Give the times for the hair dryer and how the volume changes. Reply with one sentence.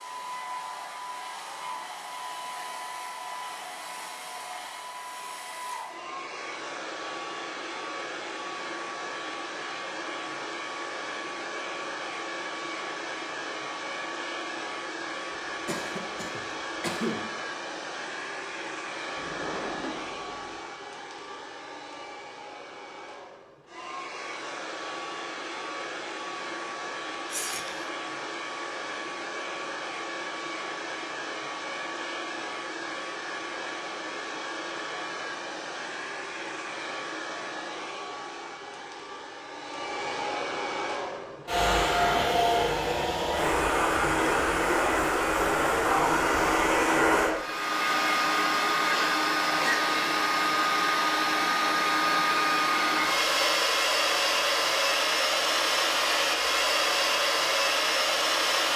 You can hear the hair dryer from 0.0 to 58.7 s, getting louder.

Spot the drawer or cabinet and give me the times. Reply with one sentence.
You can hear the drawer or cabinet from 19.1 to 20.6 s.